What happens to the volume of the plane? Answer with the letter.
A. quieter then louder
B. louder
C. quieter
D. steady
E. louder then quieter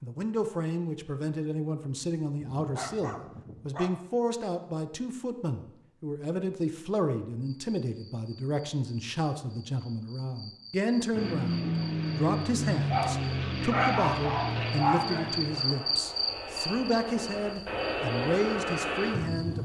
A.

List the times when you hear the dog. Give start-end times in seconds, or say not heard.
2.4-4.0, 12.9-15.3.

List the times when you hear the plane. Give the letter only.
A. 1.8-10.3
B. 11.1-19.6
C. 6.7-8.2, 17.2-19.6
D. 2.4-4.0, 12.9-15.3
B.